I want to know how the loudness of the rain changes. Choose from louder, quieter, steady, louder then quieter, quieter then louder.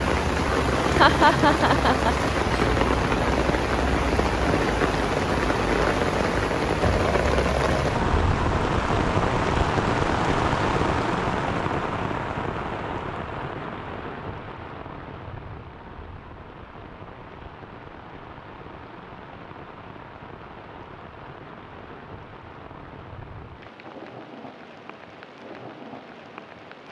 quieter.